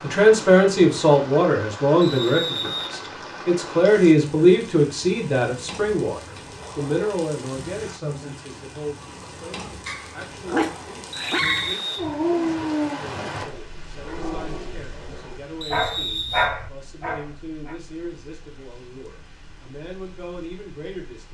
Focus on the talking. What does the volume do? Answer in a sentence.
The loudness of the talking goes down.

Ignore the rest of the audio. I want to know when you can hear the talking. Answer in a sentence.
The talking can be heard from 0.0 to 21.2 s.